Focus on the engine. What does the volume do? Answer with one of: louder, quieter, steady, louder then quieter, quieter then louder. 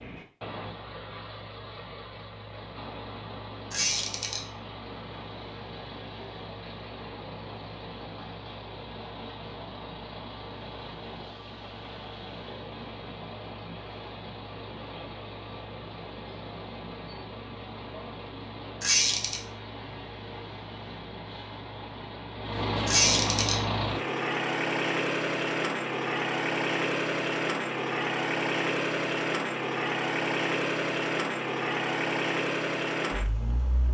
louder.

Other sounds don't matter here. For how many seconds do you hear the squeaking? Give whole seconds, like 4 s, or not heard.
2 s.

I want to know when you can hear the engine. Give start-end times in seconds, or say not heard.
0.0-33.8.